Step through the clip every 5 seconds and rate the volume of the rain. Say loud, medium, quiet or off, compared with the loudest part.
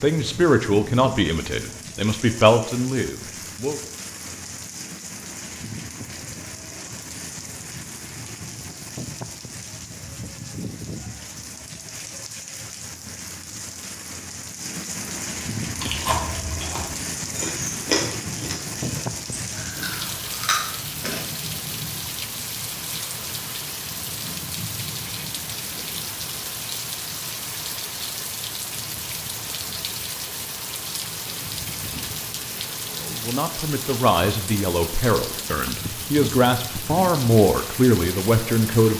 medium, medium, medium, loud, loud, loud, loud, loud.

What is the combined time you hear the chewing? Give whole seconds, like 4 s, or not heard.
6 s.